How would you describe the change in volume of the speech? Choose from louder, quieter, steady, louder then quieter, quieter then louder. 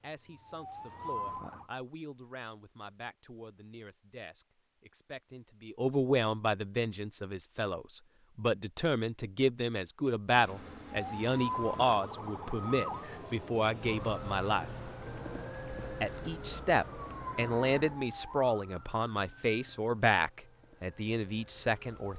louder.